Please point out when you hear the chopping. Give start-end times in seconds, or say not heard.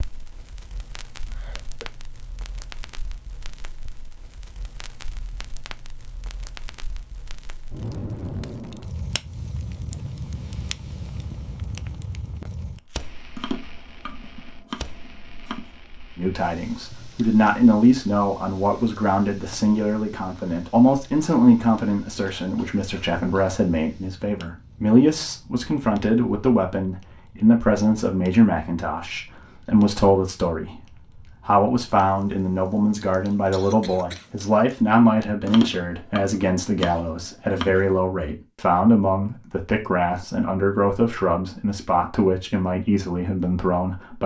13.3-15.8, 35.5-38.0.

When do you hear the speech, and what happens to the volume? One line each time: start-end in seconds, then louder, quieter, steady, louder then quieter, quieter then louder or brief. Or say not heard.
16.1-44.2 steady.